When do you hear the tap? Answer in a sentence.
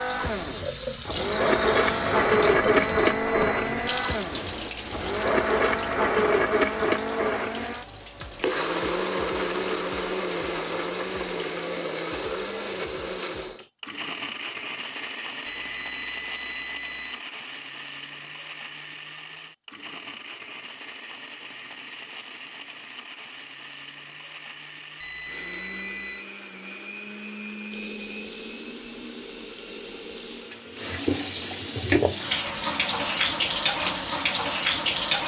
The tap can be heard from 0.0 to 13.4 s and from 27.7 to 35.2 s.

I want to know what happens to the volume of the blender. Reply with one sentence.
The loudness of the blender goes down.